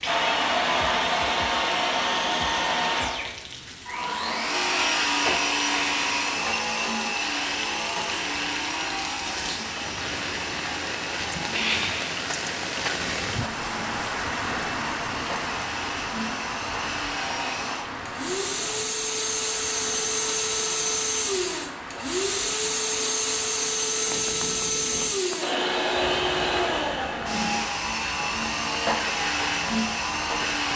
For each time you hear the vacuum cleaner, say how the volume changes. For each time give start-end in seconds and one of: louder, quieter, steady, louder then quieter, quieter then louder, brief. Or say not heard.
0.0-30.7 quieter then louder.